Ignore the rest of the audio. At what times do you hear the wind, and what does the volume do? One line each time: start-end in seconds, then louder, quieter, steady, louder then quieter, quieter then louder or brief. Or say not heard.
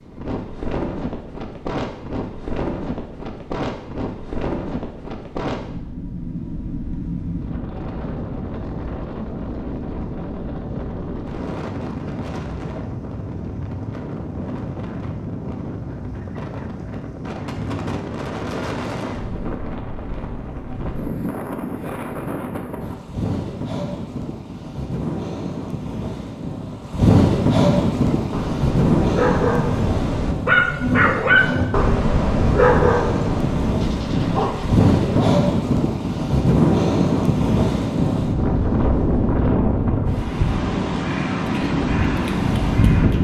0.0-43.1 louder.